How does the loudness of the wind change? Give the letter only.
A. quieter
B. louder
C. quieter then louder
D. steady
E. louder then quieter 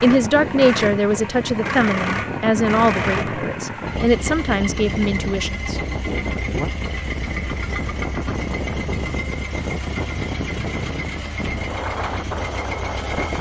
D.